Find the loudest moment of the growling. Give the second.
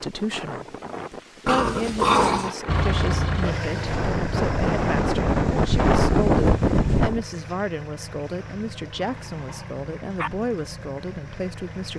2 s.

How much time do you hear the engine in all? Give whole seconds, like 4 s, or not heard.
9 s.